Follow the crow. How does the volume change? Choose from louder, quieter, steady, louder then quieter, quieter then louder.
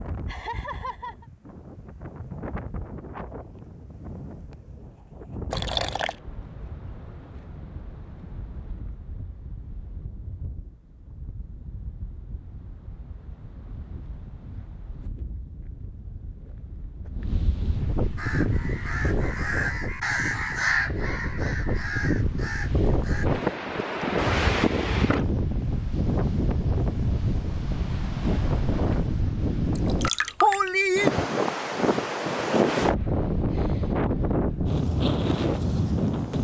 louder then quieter.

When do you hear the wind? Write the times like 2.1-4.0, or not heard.
0.0-36.3.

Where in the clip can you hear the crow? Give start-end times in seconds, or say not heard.
18.1-23.3.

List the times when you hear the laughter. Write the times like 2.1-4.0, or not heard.
0.2-1.2.